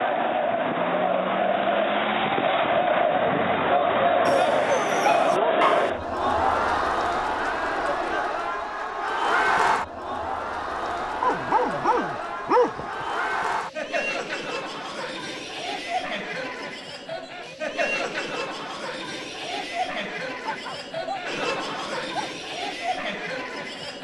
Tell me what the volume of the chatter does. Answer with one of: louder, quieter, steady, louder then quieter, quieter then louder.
quieter.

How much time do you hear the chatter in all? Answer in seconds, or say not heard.
24 s.